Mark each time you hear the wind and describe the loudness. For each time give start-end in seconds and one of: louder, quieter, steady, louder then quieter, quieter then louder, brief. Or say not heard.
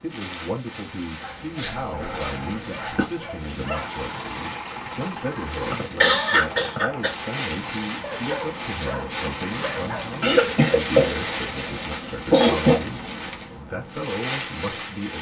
0.0-15.1 louder.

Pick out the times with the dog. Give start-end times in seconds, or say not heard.
1.2-3.9, 8.0-10.1.